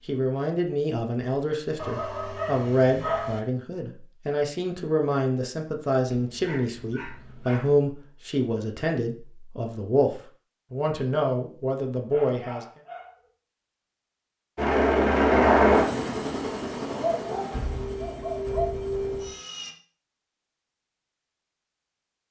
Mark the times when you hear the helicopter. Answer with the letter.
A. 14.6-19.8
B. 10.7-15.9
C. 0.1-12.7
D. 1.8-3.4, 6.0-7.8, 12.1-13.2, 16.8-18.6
A.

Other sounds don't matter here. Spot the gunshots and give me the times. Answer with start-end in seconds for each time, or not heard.
not heard.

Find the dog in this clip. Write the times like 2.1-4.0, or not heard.
1.8-3.4, 6.0-7.8, 12.1-13.2, 16.8-18.6.